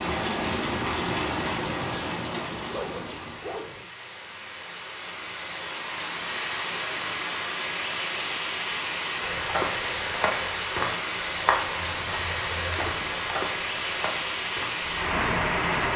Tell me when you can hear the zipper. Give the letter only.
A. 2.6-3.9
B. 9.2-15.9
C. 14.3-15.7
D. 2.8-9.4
A.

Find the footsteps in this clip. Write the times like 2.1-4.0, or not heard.
9.2-15.9.